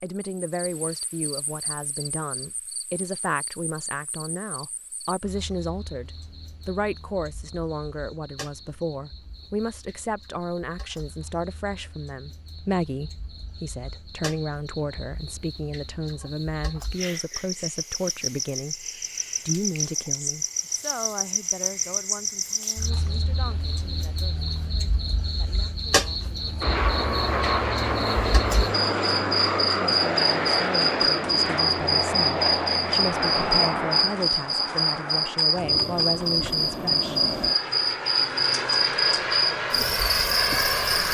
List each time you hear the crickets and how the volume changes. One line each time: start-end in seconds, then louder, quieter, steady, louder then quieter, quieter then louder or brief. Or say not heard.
0.0-41.0 louder.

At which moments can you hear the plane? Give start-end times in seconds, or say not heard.
26.6-41.0.